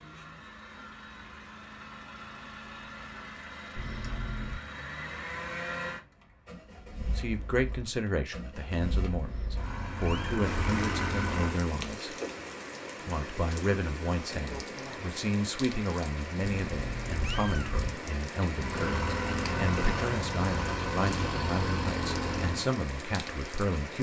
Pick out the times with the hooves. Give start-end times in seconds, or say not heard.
not heard.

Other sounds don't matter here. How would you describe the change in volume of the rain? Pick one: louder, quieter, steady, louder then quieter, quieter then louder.
steady.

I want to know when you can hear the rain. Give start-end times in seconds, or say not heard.
10.4-23.9.